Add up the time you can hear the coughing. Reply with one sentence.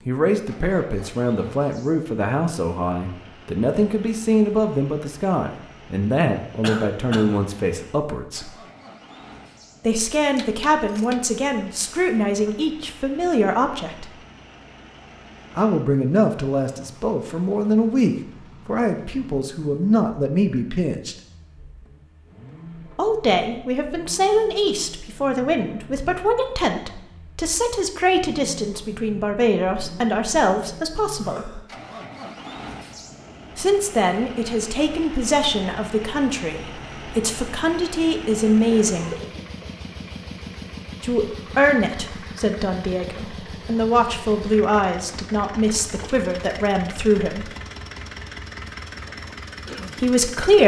The coughing can be heard for 2 seconds in total.